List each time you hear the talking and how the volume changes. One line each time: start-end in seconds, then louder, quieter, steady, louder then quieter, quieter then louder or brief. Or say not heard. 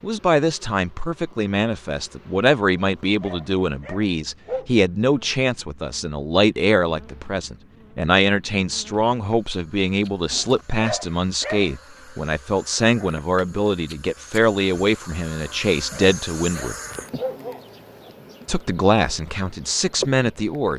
0.0-16.8 steady
18.4-20.7 brief.